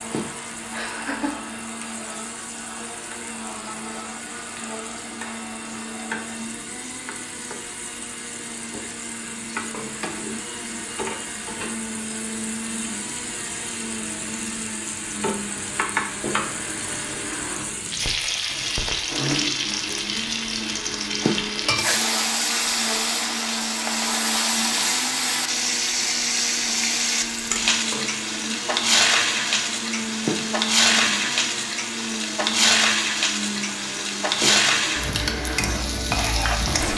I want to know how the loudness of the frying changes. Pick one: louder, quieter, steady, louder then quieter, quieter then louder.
louder.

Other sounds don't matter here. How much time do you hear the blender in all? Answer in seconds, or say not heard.
37 s.